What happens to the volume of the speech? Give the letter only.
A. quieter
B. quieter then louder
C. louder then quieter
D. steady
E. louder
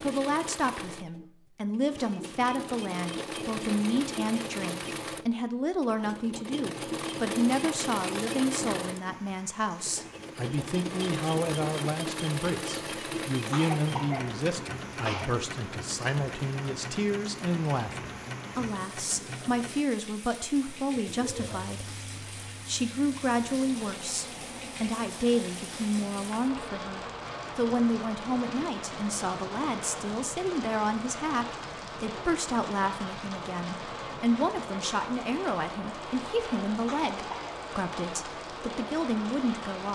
D.